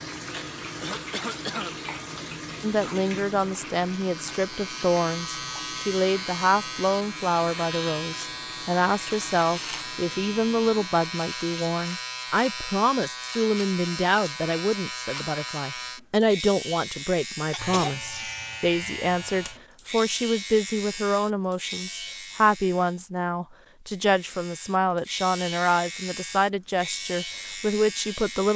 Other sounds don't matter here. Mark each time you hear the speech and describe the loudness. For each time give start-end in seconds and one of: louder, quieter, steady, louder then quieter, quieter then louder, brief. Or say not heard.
2.6-28.5 steady.